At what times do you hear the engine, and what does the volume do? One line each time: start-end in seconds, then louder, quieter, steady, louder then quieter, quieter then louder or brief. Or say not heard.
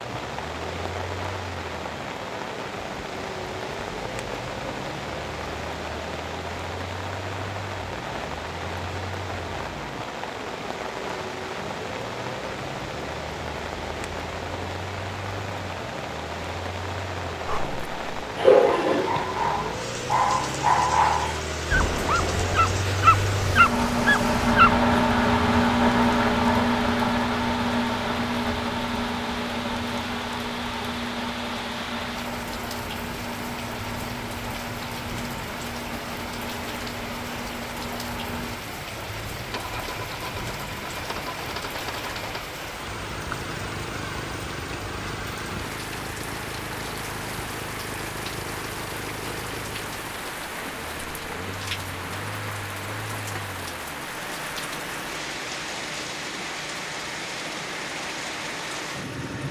0.0-59.4 louder then quieter.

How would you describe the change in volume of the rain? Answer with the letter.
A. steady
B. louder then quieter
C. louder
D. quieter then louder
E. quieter
A.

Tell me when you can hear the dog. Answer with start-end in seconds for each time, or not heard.
17.4-24.8.